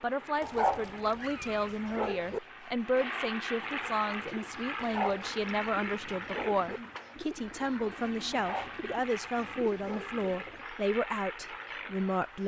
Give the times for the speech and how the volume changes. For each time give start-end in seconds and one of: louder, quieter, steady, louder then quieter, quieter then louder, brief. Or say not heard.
0.0-12.4 steady.